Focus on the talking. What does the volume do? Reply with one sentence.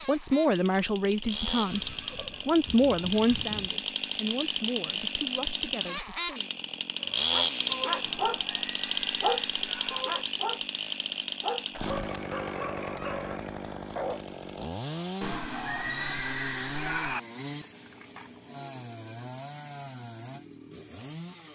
The volume of the talking goes down.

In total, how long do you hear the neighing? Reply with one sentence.
The neighing can be heard for 6 seconds in total.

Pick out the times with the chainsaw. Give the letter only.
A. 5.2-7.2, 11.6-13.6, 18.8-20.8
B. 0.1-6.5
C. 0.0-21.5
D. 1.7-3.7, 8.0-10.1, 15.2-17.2
C.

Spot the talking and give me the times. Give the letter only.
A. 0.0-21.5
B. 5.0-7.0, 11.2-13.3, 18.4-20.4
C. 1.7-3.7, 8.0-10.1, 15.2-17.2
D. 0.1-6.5
D.